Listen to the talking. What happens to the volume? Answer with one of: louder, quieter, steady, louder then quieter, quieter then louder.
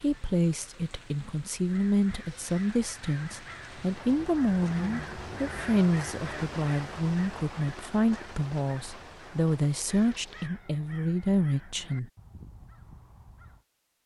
steady.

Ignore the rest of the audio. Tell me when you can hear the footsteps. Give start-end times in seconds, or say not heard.
not heard.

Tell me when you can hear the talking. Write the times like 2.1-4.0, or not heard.
0.0-12.1.